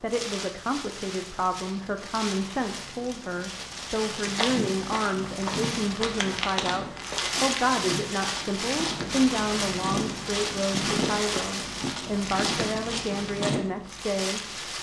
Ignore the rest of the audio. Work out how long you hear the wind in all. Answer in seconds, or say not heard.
15 s.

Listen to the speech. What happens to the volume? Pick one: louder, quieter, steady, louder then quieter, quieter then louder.
steady.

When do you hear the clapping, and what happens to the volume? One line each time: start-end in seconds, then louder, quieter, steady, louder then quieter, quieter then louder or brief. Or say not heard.
not heard.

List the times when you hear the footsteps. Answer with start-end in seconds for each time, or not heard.
4.2-13.6.